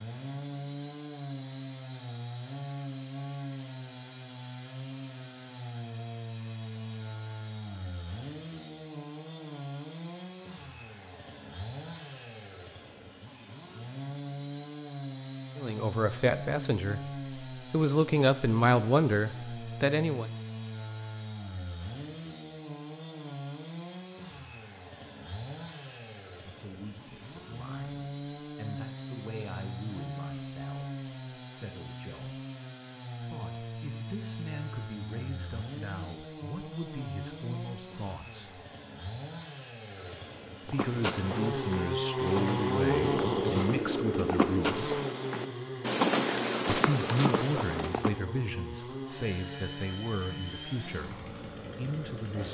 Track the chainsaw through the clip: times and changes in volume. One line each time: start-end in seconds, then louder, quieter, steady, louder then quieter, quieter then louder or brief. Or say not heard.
0.0-52.4 louder.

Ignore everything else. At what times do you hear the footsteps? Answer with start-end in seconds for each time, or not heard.
40.6-48.1.